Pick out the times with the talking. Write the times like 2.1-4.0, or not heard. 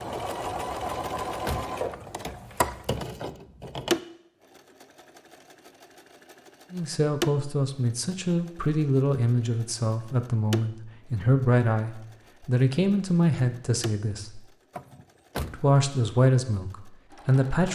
6.7-14.4, 15.5-17.6.